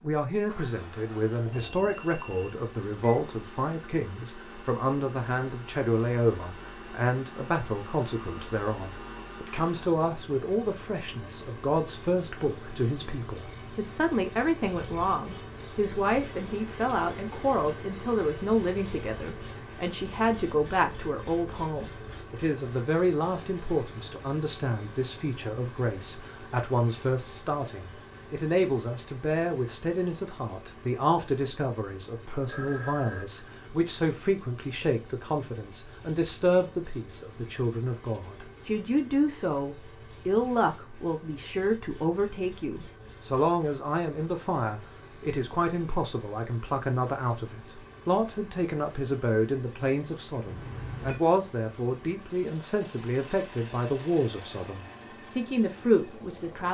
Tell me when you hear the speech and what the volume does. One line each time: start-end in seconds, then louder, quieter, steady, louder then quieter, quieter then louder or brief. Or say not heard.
0.0-56.6 steady.